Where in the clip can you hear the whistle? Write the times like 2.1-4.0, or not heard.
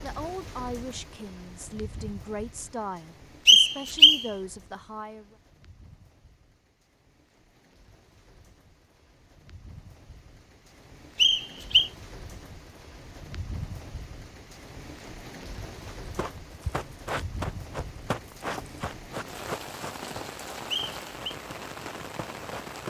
3.5-4.2, 11.2-11.9, 20.7-21.4.